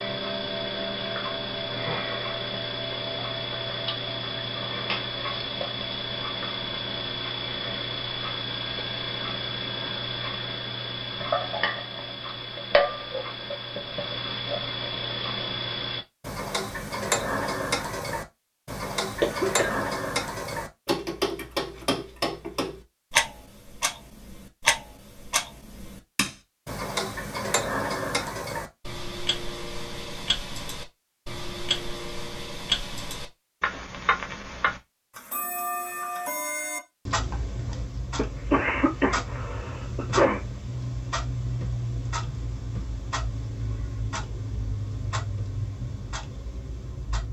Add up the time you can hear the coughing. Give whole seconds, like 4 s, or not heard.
3 s.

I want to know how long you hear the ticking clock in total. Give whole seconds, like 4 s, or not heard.
47 s.